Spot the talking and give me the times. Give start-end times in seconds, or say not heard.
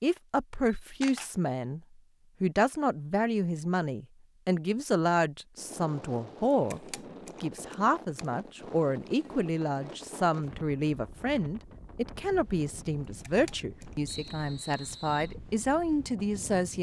0.0-1.8, 2.4-6.8, 7.4-16.7.